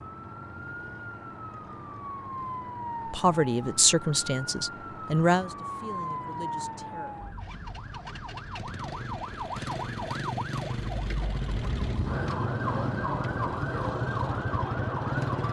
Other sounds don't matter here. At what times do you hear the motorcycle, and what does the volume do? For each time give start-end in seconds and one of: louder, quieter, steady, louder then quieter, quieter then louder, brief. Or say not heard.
0.0-15.4 louder.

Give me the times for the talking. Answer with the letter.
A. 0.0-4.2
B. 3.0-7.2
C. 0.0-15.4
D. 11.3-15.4
B.